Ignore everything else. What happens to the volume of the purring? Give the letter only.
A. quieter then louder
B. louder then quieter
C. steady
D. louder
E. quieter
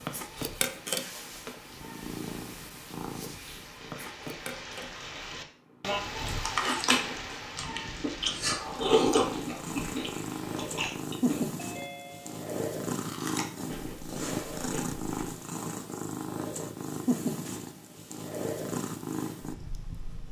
A.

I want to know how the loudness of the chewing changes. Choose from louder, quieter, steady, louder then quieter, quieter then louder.
quieter.